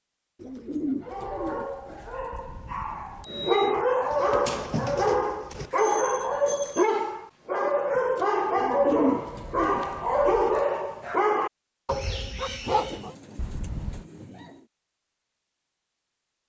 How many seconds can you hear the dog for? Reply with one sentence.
You can hear the dog for 12 seconds altogether.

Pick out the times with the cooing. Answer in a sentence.
You can hear the cooing from 0.4 to 2.3 s, from 4.1 to 5.7 s, from 8.6 to 10.6 s and from 12.6 to 14.7 s.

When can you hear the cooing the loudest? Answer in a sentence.
The loudest moment of the cooing is at 9 seconds.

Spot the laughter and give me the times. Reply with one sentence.
The laughter can't be heard in this clip.